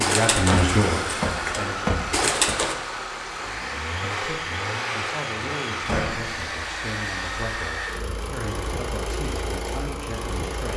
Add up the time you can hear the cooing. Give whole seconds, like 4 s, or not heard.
3 s.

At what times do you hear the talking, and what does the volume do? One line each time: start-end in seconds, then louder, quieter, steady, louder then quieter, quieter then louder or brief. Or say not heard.
0.0-1.8 brief
4.0-10.7 steady.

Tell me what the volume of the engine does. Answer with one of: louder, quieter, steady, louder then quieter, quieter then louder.
steady.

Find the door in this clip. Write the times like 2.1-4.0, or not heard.
0.5-2.6, 5.8-6.4.